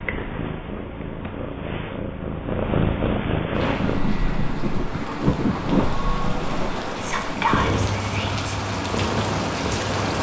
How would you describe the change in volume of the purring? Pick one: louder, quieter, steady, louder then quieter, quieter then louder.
louder then quieter.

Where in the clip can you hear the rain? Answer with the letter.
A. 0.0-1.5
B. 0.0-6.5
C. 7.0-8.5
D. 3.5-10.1
D.